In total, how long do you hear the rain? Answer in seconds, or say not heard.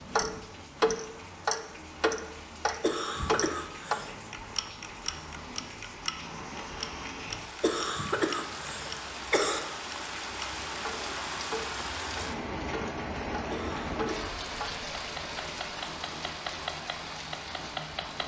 18 s.